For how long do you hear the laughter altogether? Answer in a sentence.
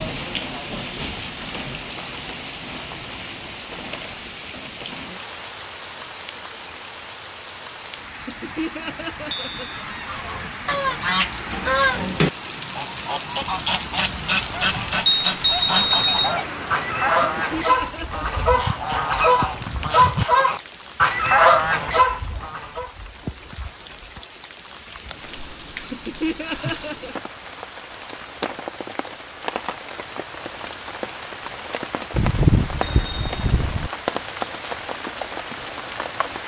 The laughter can be heard for 5 seconds in total.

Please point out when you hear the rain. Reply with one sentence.
The rain can be heard from 0.0 to 36.4 s.